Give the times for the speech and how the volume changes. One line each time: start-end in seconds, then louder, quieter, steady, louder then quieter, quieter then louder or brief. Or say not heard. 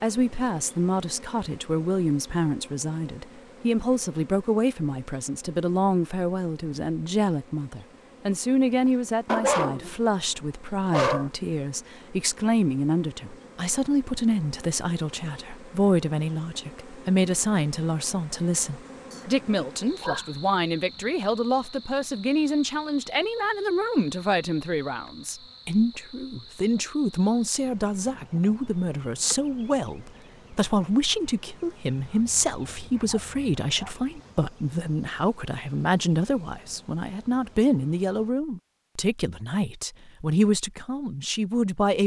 0.0-42.0 steady.